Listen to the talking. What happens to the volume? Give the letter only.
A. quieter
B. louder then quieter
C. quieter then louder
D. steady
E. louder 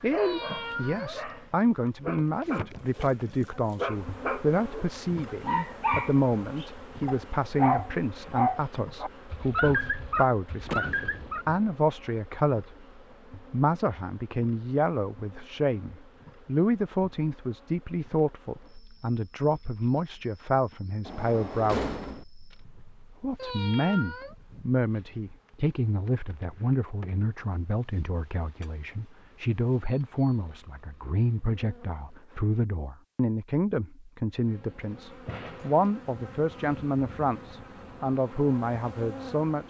D.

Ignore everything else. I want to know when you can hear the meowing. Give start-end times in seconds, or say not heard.
0.1-1.2, 23.4-24.4.